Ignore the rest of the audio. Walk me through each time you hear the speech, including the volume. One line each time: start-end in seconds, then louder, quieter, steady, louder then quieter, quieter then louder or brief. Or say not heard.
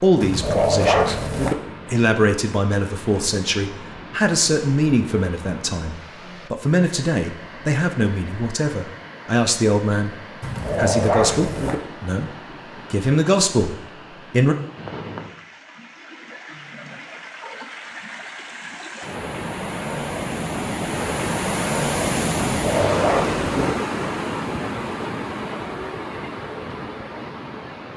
0.0-12.3 steady
12.9-14.6 brief.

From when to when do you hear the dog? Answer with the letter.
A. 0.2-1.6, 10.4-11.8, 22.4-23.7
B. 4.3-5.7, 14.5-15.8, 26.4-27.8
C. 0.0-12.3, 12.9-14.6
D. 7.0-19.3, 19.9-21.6
A.